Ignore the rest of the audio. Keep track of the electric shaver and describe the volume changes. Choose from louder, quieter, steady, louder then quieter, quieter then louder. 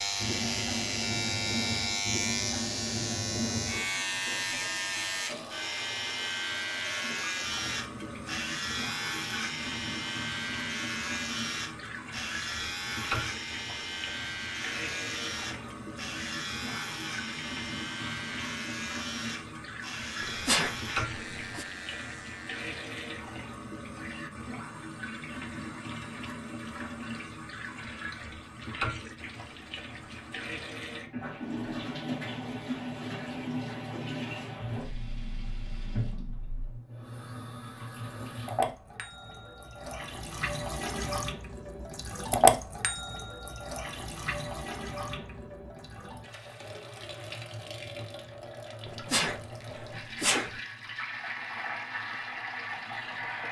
quieter.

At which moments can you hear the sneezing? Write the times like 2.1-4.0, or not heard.
20.2-21.6, 48.9-50.5.